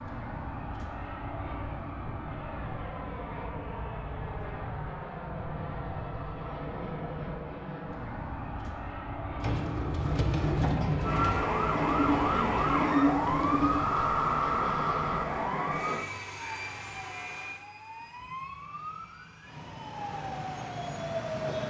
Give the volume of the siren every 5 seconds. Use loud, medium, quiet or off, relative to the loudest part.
off, off, loud, medium, medium.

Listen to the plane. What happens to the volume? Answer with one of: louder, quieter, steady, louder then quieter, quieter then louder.
quieter.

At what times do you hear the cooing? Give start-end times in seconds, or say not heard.
9.4-13.9.